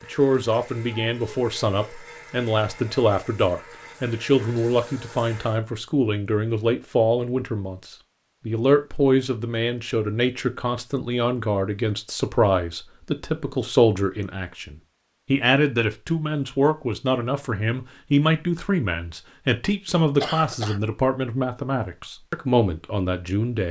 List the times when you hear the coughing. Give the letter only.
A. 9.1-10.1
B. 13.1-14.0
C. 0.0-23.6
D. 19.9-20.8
D.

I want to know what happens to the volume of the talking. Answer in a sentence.
The volume of the talking stays about the same.